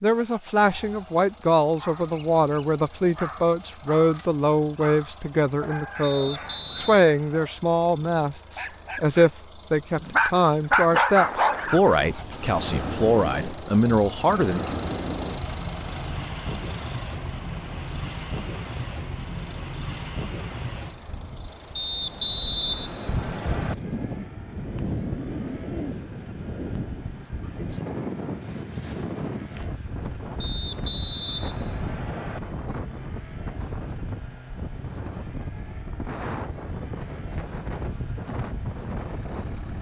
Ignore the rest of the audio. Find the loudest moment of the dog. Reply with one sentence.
The volume of the dog peaks at 11 seconds.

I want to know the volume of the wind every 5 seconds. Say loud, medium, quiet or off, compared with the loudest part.
off, off, loud, loud, loud, loud, loud, loud.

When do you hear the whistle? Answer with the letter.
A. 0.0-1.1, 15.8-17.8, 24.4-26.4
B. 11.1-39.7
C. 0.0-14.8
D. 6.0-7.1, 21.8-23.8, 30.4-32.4
D.